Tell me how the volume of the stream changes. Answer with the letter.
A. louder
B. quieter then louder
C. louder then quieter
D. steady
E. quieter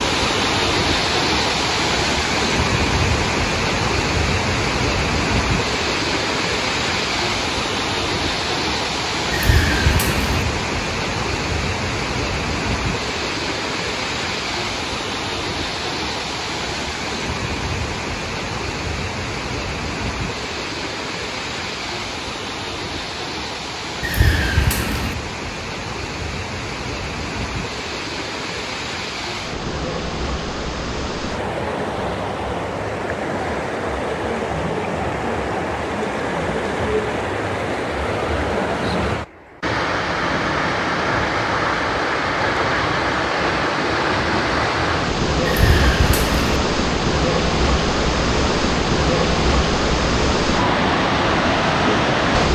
B.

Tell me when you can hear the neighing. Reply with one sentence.
The neighing can be heard from 9.3 to 10.4 s, from 24.0 to 25.1 s and from 45.5 to 46.5 s.